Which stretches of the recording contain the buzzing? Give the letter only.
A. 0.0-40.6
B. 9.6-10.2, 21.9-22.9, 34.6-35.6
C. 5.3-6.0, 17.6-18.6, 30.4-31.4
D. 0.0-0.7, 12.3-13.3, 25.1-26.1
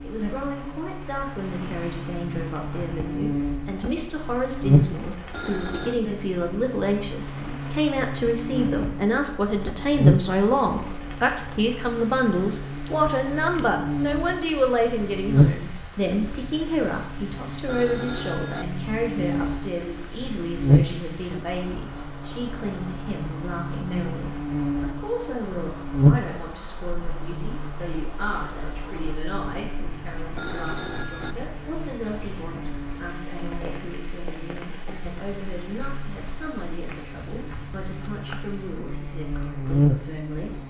A.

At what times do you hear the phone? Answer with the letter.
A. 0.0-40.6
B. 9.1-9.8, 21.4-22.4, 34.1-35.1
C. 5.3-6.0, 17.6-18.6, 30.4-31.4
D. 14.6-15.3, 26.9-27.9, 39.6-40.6
C.